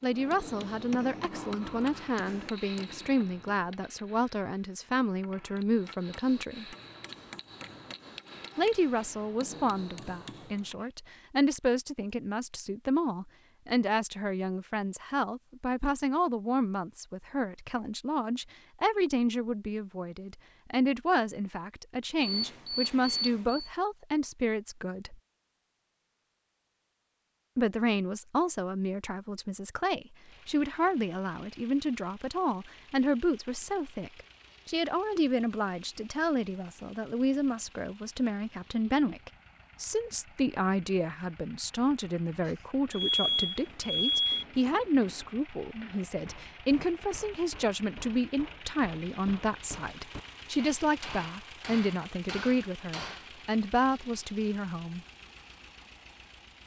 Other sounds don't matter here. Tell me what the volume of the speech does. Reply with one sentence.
The volume of the speech stays about the same.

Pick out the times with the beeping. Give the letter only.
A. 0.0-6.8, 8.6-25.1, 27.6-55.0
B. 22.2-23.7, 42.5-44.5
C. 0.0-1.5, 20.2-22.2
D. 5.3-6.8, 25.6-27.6
B.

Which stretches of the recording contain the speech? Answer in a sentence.
You can hear the speech from 0.0 to 6.8 s, from 8.6 to 25.1 s and from 27.6 to 55.0 s.